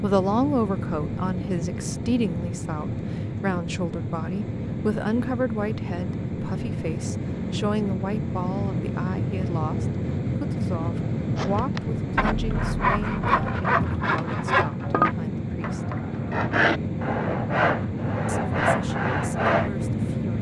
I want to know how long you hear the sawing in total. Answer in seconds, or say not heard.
8 s.